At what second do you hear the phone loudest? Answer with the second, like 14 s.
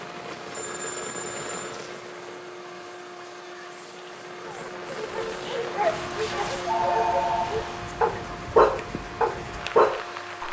7 s.